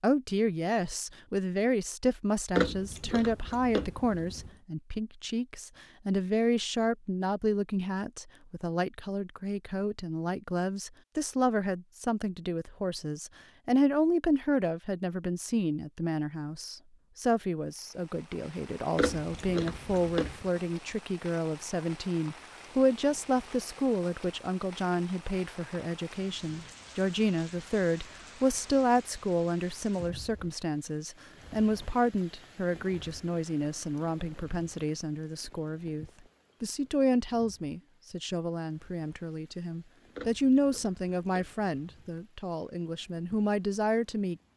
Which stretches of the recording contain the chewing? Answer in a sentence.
The chewing can be heard from 2.5 to 4.5 s, from 18.9 to 20.5 s and from 40.1 to 42.2 s.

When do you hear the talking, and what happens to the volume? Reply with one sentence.
The talking can be heard from 0.0 to 44.4 s, at a steady volume.